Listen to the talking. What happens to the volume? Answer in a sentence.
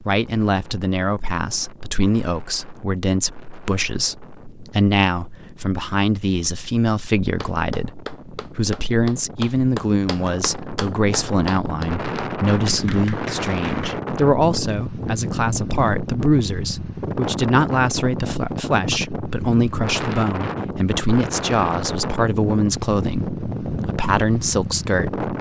The volume of the talking stays about the same.